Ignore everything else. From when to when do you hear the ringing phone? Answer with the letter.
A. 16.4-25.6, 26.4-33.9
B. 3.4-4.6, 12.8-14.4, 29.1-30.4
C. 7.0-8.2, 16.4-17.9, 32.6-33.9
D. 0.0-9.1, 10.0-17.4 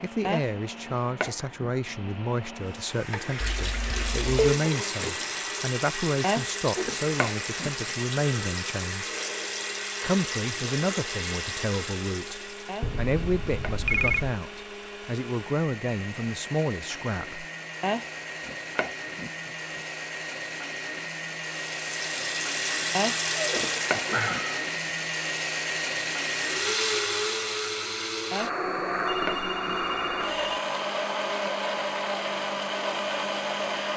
B.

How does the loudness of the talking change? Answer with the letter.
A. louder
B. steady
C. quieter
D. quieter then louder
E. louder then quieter
B.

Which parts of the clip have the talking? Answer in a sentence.
The talking can be heard from 0.0 to 9.1 s and from 10.0 to 17.4 s.